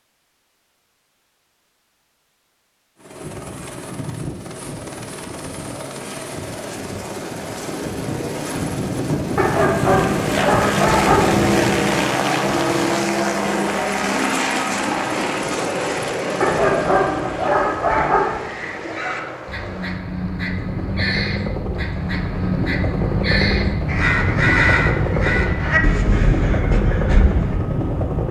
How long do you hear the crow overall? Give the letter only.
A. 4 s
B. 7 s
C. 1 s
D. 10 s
D.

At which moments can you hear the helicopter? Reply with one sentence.
The helicopter can be heard from 3.0 to 28.2 s.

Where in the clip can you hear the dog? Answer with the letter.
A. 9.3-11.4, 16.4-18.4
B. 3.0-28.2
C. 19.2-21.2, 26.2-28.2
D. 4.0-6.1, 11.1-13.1
A.